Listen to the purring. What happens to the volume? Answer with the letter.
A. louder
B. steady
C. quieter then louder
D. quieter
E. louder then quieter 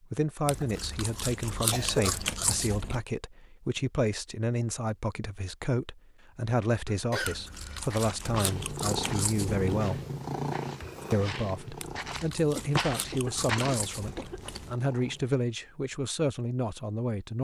D.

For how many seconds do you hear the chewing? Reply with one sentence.
The chewing can be heard for 8 seconds in total.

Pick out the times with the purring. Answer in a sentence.
You can hear the purring from 8.2 to 15.4 s.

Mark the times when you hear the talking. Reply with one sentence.
You can hear the talking from 0.0 to 10.0 s and from 11.1 to 17.3 s.